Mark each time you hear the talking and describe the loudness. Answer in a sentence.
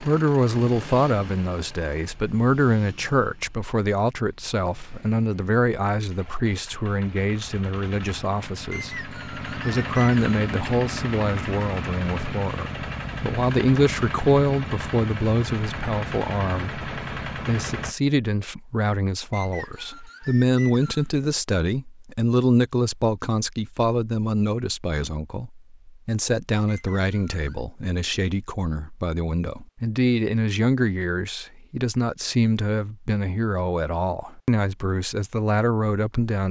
The talking can be heard from 0.0 to 36.4 s, at a steady volume.